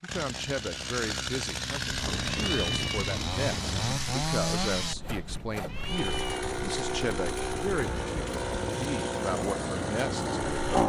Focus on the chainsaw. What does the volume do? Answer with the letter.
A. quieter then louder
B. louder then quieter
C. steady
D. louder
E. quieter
C.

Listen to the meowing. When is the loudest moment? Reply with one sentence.
The loudest moment of the meowing is at 3 seconds.